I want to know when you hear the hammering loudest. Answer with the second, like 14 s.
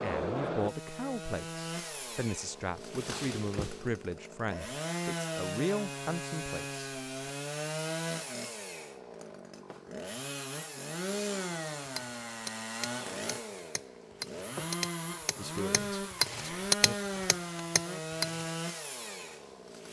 17 s.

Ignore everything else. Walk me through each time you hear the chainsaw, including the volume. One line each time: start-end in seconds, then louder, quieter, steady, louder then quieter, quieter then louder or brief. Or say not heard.
0.0-19.8 steady.